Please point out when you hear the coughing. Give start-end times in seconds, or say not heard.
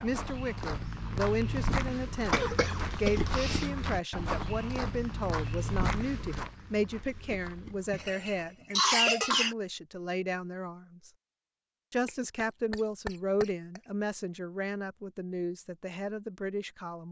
2.3-3.9, 7.9-9.6, 12.1-13.8.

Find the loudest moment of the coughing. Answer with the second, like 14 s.
9 s.